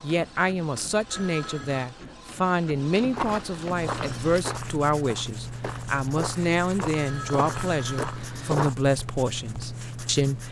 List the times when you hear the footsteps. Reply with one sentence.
The footsteps can be heard from 3.0 to 8.8 s.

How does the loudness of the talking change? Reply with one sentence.
The loudness of the talking stays about the same.